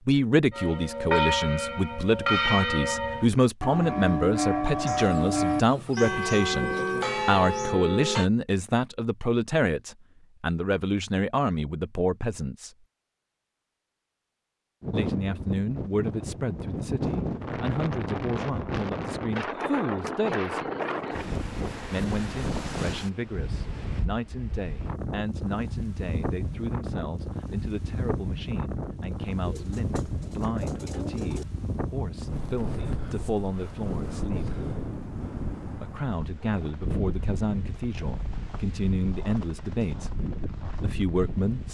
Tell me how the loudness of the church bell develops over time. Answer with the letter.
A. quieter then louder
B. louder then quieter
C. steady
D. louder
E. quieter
C.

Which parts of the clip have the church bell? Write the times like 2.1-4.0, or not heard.
0.5-8.3.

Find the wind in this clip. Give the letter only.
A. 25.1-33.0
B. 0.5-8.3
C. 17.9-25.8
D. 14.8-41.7
D.